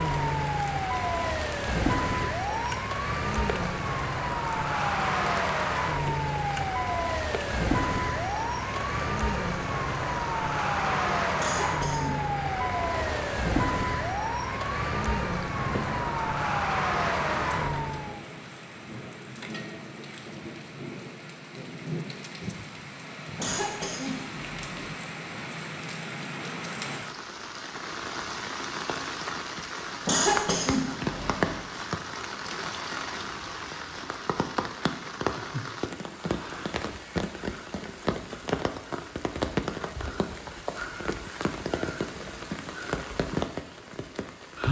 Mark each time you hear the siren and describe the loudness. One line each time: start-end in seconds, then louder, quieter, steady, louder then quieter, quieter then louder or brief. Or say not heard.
0.0-18.2 steady.